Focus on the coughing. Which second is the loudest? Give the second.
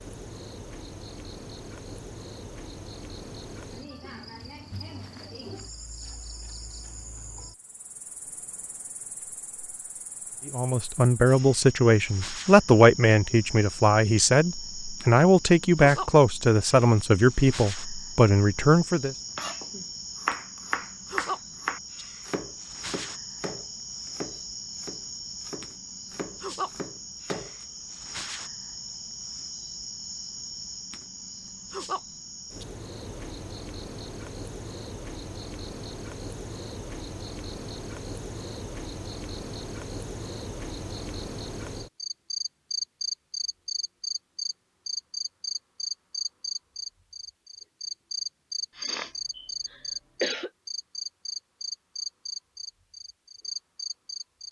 50 s.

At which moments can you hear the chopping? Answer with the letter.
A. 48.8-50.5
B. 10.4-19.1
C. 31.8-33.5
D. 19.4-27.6
D.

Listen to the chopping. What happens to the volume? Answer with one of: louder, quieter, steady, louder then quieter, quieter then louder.
quieter.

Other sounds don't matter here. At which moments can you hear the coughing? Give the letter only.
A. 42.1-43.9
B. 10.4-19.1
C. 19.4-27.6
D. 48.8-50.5
D.